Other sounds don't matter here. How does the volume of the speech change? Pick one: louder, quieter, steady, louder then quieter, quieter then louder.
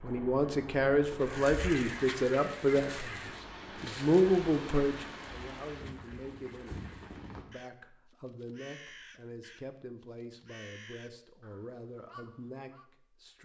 quieter.